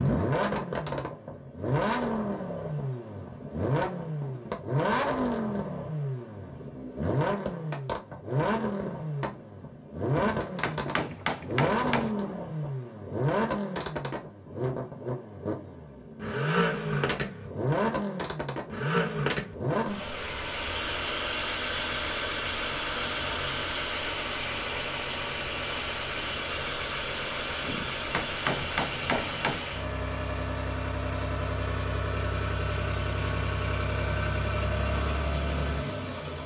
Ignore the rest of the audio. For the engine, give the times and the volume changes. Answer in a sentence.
The engine can be heard from 0.0 to 36.4 s, at a steady volume.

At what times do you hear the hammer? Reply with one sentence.
You can hear the hammer from 10.1 to 12.2 s and from 27.6 to 29.6 s.